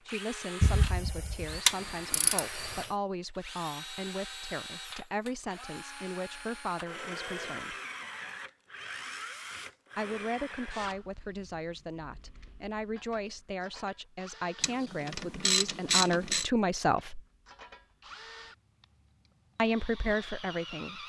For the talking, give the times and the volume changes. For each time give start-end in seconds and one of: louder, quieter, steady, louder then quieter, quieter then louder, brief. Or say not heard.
0.1-7.8 steady
9.9-17.2 louder
19.6-21.0 brief.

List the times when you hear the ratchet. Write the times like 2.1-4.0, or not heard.
0.6-2.9, 14.6-16.4.